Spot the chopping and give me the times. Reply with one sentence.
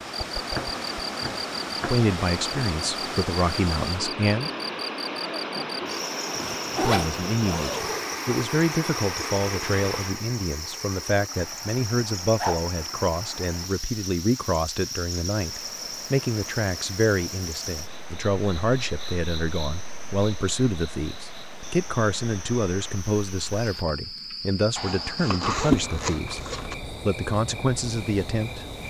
The chopping can be heard from 0.0 to 2.0 s.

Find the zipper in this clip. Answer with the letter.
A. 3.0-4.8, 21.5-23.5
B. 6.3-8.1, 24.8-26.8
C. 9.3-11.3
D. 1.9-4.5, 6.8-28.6
B.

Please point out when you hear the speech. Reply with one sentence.
The speech can be heard from 1.9 to 4.5 s and from 6.8 to 28.6 s.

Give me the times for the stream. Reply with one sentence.
The stream can be heard from 0.0 to 23.9 s.